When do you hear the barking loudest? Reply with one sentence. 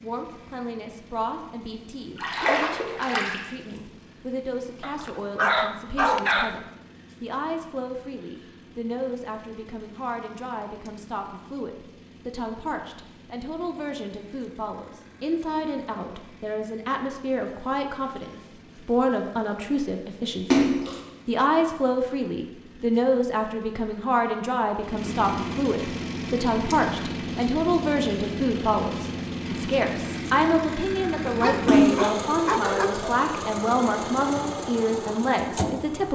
The volume of the barking peaks at 6 seconds.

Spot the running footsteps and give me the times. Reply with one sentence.
The running footsteps can't be heard in this clip.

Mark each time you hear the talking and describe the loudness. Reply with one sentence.
The talking can be heard from 0.0 to 36.0 s, getting louder.